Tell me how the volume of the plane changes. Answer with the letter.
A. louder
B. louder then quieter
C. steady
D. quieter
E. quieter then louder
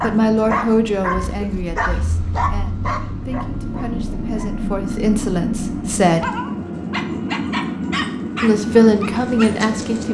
A.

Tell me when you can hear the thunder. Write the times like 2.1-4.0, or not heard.
not heard.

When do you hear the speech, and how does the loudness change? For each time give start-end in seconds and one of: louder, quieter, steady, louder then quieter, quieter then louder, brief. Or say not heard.
0.0-6.3 quieter then louder
8.4-10.1 brief.